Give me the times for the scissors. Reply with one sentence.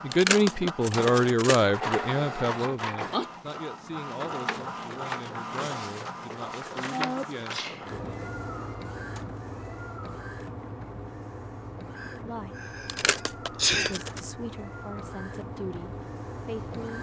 The scissors can be heard from 0.1 to 1.6 s, from 7.3 to 7.9 s and from 12.8 to 14.2 s.